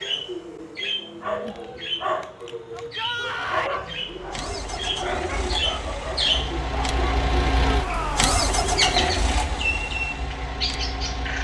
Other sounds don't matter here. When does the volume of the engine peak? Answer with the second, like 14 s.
9 s.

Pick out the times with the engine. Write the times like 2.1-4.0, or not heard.
3.9-11.4.